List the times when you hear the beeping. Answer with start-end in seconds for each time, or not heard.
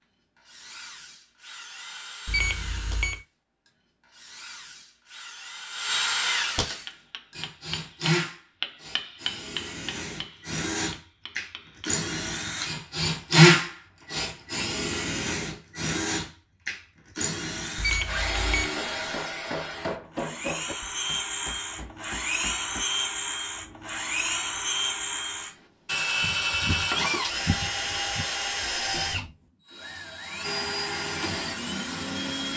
2.2-3.2, 17.8-18.6, 26.2-28.2.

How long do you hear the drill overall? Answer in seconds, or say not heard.
32 s.